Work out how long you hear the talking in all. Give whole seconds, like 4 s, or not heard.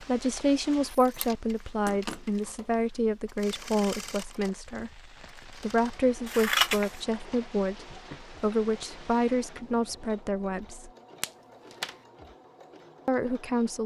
12 s.